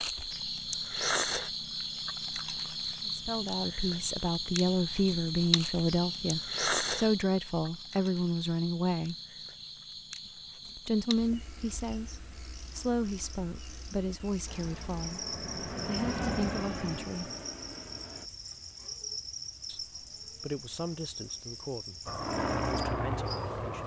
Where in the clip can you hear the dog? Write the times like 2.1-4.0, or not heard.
not heard.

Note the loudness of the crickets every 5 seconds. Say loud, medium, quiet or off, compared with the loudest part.
loud, loud, quiet, medium, medium.